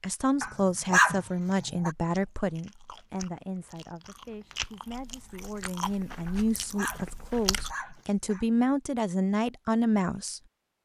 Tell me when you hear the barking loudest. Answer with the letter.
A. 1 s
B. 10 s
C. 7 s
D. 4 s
A.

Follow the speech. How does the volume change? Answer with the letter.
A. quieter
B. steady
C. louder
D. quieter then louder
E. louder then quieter
D.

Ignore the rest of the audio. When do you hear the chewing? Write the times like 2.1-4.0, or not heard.
2.1-7.8.